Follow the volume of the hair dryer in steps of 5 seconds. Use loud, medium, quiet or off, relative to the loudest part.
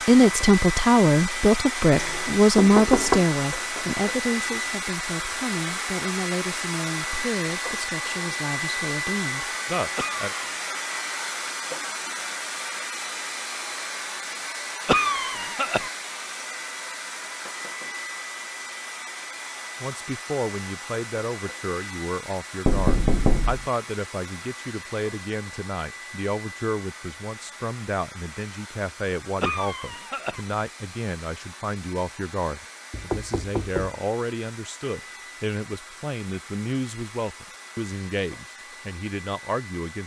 loud, loud, loud, medium, medium, quiet, quiet, quiet.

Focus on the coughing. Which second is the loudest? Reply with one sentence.
The volume of the coughing peaks at 15 seconds.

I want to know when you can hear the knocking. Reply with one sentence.
The knocking can be heard from 1.9 to 3.2 s, from 22.6 to 23.6 s and from 32.9 to 34.0 s.